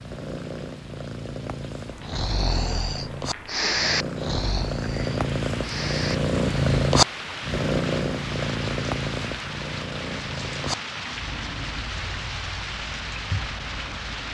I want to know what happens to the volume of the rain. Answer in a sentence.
The loudness of the rain goes up.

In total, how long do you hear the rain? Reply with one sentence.
The rain can be heard for 14 seconds in total.